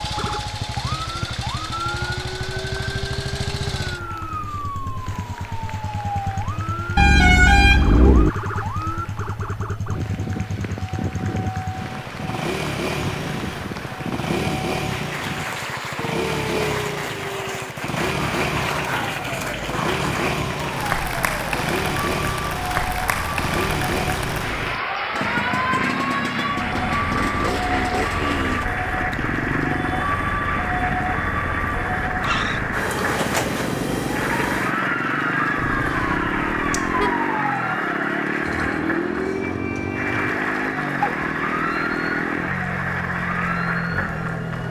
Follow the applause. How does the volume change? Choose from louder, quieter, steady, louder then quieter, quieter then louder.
louder.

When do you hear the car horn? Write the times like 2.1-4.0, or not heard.
7.0-8.3, 35.5-37.1.